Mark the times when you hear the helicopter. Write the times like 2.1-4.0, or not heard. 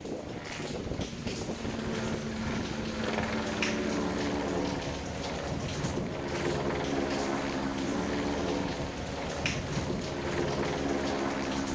0.0-11.7.